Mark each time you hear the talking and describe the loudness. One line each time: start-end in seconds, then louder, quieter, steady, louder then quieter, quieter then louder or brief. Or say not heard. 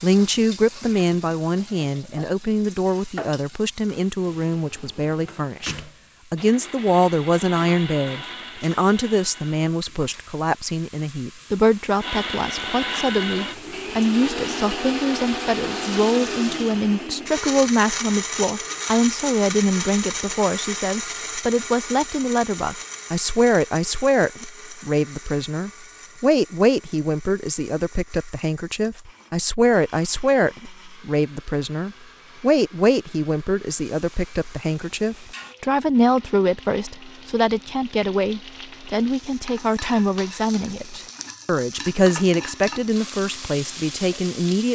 0.0-44.7 steady.